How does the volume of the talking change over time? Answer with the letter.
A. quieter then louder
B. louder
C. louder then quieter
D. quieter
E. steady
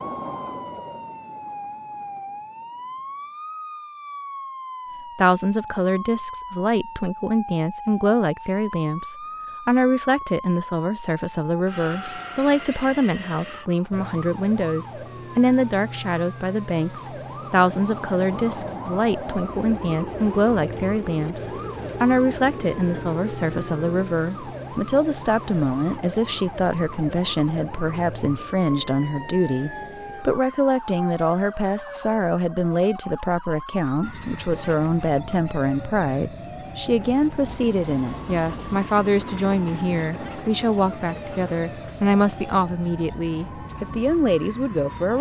E.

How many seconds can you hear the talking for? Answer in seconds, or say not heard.
40 s.